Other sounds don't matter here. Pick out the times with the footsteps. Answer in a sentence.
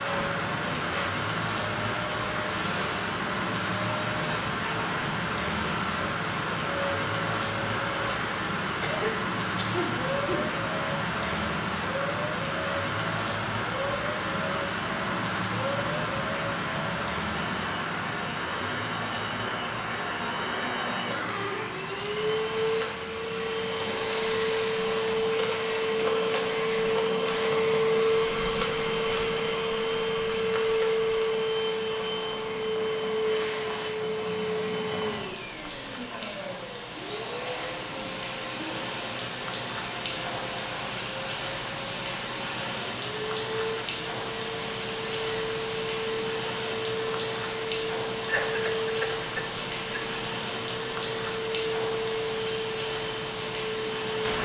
You can't hear the footsteps here.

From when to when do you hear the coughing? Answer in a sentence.
You can hear the coughing from 8.8 to 10.4 s, from 21.0 to 21.7 s and from 48.2 to 50.0 s.